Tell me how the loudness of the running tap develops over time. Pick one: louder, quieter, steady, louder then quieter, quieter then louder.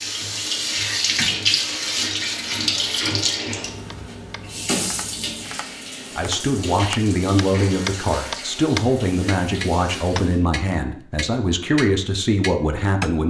quieter.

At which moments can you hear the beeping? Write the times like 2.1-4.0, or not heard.
not heard.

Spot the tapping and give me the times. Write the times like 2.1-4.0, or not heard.
3.9-13.2.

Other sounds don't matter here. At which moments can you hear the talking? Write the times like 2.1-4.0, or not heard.
6.2-13.2.